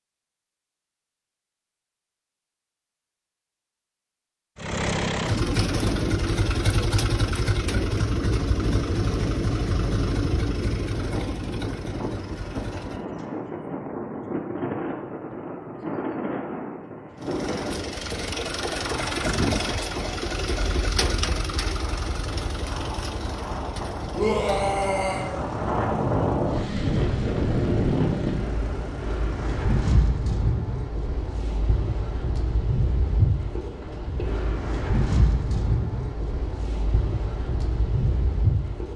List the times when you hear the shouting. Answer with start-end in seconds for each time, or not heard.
24.1-25.2.